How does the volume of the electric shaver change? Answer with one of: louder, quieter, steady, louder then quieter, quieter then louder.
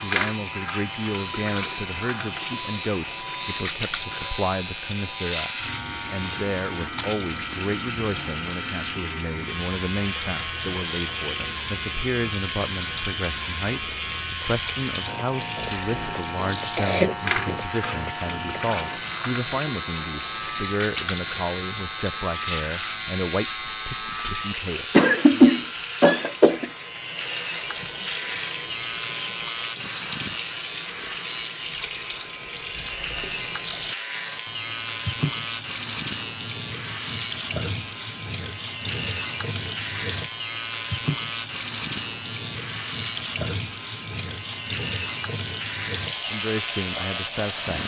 steady.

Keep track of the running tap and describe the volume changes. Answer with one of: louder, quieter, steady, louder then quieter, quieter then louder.
steady.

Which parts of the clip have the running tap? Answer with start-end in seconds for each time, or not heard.
0.0-47.8.